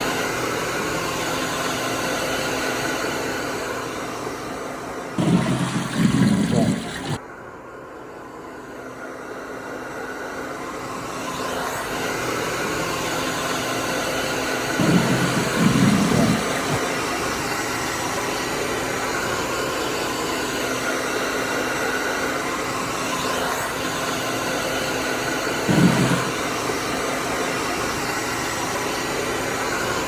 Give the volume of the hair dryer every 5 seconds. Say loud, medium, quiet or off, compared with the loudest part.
loud, medium, loud, loud, loud, loud.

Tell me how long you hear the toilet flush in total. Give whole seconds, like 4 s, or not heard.
5 s.